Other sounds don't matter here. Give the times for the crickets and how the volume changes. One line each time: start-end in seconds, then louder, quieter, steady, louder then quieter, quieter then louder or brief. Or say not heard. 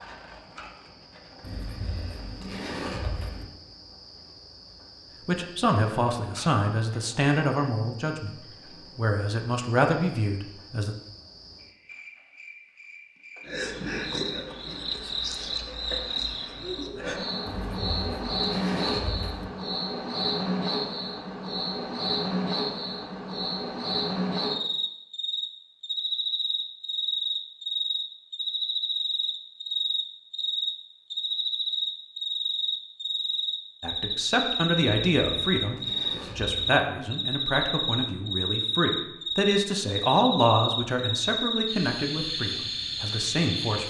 0.0-43.8 louder.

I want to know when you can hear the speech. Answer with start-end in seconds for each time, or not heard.
5.2-10.9, 33.8-43.8.